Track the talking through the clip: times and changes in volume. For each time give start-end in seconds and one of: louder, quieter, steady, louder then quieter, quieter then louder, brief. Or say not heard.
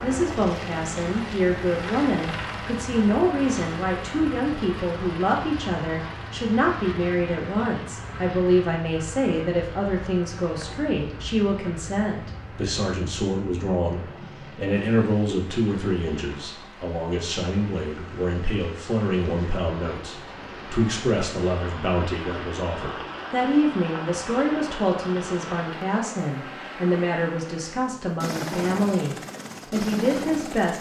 0.0-30.7 steady.